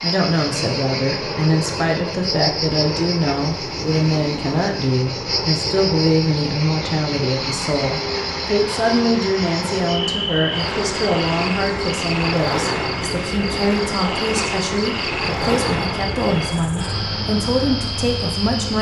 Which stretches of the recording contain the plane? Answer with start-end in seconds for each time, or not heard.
0.2-18.7.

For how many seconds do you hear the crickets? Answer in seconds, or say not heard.
19 s.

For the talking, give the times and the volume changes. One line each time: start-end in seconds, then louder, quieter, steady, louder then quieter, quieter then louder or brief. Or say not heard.
0.0-18.7 steady.